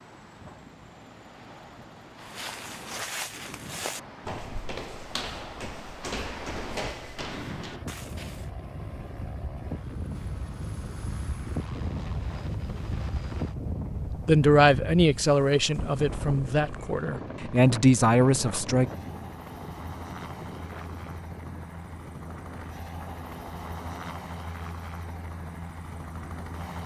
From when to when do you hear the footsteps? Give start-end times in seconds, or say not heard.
2.2-8.4.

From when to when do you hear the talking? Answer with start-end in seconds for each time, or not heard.
14.2-18.9.